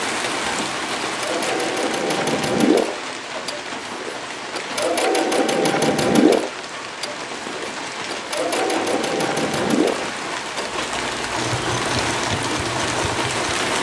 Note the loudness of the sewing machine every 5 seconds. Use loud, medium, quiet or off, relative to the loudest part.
loud, loud, medium.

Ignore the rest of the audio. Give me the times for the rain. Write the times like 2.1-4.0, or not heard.
0.0-13.7.